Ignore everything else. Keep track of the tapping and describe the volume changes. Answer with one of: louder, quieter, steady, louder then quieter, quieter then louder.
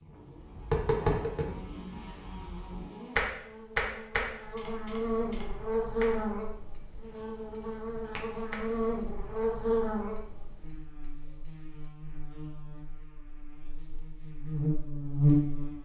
quieter.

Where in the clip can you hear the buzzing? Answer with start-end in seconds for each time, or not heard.
0.0-15.8.